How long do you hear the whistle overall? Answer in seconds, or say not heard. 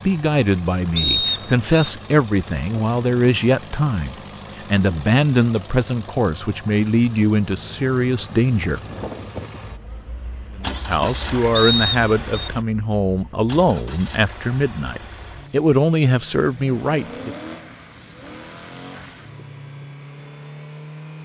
2 s.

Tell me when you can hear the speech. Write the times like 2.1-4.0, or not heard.
0.0-8.8, 10.6-17.4.